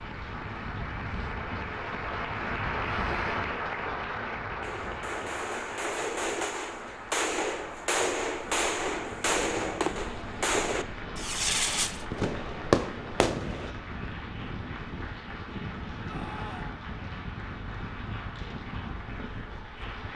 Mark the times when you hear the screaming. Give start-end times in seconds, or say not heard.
3.0-3.5, 16.1-16.8.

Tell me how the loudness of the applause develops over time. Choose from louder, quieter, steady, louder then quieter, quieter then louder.
quieter.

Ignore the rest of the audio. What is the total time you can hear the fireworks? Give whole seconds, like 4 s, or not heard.
9 s.